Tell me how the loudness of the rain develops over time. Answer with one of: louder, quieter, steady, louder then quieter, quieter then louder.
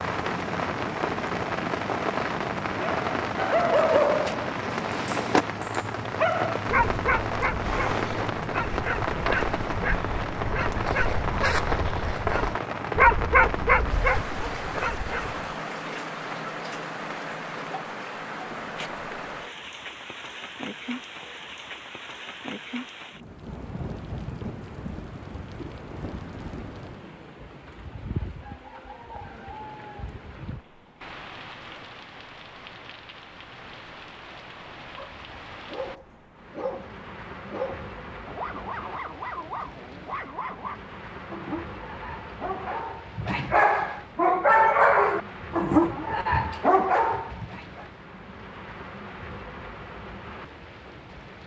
quieter.